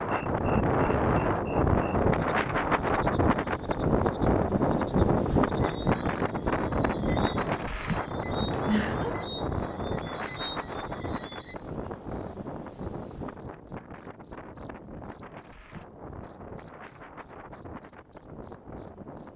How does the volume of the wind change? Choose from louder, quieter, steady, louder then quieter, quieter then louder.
quieter.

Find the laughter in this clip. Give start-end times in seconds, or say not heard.
8.5-9.3.